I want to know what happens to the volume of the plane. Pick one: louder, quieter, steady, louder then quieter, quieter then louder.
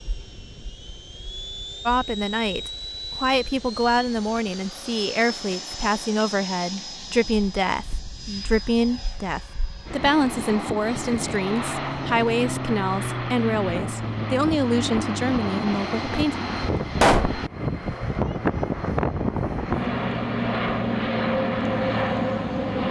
louder.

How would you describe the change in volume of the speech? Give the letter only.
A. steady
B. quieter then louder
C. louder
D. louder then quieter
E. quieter
A.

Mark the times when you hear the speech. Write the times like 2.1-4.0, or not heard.
1.9-16.4.